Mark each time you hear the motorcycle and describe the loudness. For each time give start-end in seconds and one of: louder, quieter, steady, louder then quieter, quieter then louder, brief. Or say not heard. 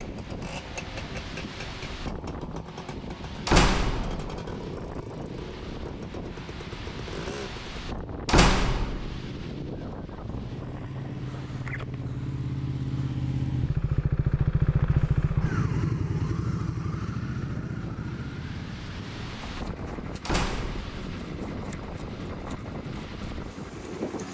0.0-24.2 louder then quieter.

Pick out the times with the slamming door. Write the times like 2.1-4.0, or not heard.
3.5-4.3, 8.2-9.2, 20.2-20.9.